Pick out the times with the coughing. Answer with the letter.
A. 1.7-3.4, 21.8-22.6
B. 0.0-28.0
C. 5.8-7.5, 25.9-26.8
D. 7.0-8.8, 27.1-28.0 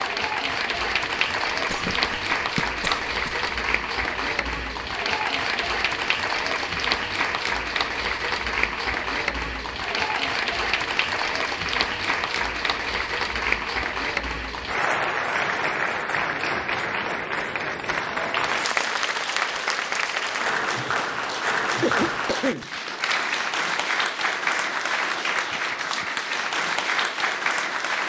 A.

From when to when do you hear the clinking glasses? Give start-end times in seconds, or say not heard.
not heard.